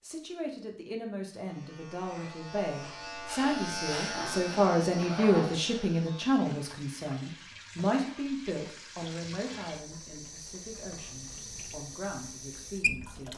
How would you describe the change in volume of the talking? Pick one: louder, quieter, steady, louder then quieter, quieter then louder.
louder then quieter.